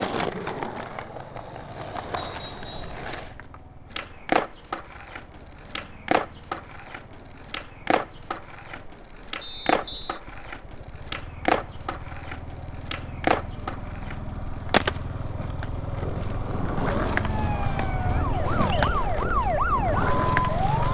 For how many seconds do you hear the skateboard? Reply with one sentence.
The skateboard can be heard for 21 seconds in total.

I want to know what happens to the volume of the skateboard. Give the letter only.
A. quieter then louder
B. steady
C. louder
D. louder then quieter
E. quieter
B.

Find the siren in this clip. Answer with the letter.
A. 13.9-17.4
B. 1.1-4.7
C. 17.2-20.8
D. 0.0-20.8
C.